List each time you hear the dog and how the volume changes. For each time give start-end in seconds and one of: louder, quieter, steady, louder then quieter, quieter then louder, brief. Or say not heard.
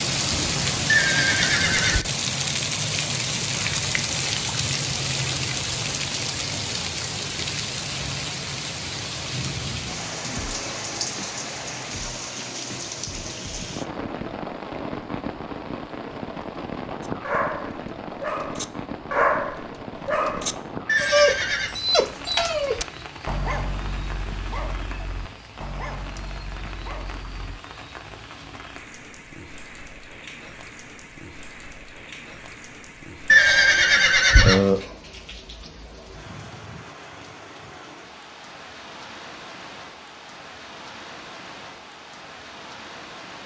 17.0-27.6 quieter.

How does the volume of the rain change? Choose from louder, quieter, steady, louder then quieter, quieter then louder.
quieter.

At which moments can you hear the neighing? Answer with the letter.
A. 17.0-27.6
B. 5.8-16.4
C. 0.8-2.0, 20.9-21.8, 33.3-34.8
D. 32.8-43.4
C.